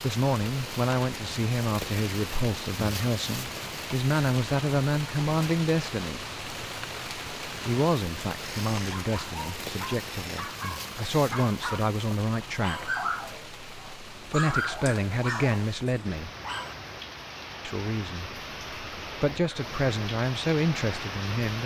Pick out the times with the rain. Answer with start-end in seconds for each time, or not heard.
0.0-21.6.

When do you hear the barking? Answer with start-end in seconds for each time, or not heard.
8.3-16.8.